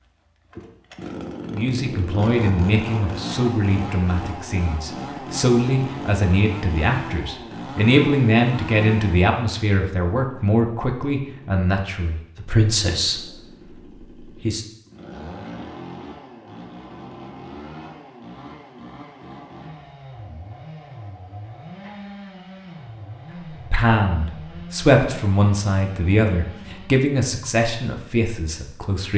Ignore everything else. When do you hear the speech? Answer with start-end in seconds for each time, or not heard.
1.5-13.4, 14.2-14.7, 23.5-29.1.